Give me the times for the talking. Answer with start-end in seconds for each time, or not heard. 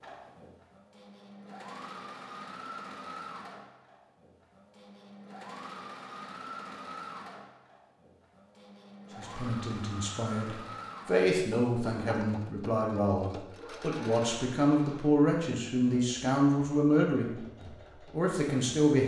9.2-19.0.